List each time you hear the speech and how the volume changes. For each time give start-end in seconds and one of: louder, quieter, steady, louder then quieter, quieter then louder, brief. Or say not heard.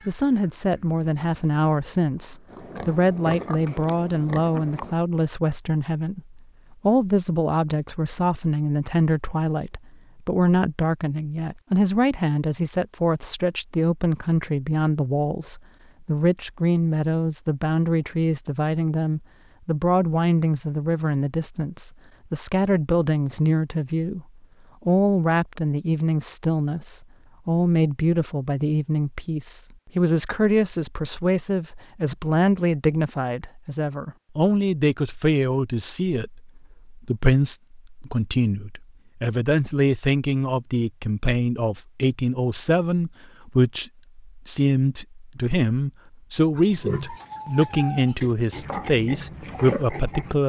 0.1-24.2 steady
24.9-50.4 steady.